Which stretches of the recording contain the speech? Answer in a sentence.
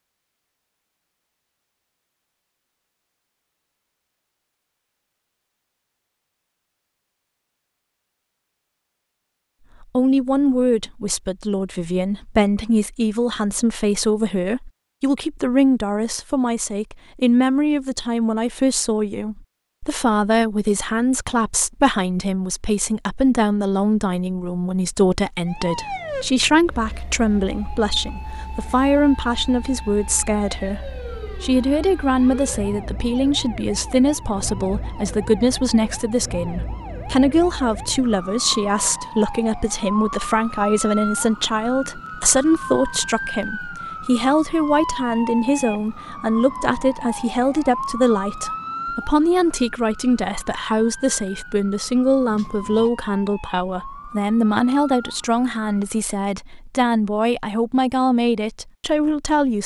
The speech can be heard from 9.8 to 59.6 s.